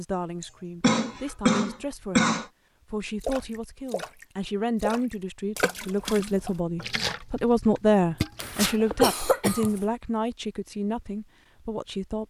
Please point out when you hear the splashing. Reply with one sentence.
The splashing can be heard from 3.2 to 8.7 s.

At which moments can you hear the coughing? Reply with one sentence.
The coughing can be heard from 0.4 to 2.5 s and from 8.3 to 9.8 s.